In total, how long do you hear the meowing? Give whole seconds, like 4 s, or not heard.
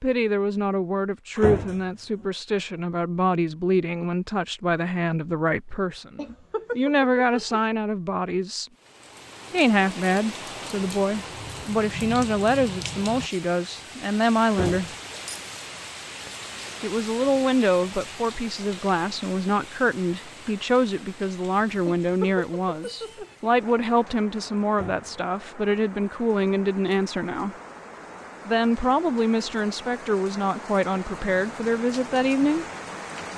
3 s.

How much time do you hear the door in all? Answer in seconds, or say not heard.
2 s.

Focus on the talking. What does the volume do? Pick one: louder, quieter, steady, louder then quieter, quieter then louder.
steady.